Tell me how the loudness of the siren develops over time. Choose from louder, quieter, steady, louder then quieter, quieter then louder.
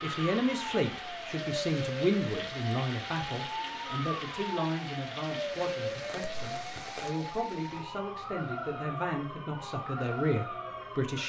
steady.